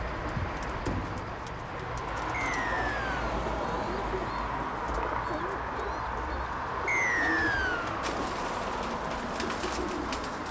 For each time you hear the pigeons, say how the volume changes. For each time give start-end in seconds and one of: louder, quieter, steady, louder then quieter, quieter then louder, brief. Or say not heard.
0.0-10.4 steady.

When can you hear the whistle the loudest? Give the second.
7 s.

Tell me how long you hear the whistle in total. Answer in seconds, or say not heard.
2 s.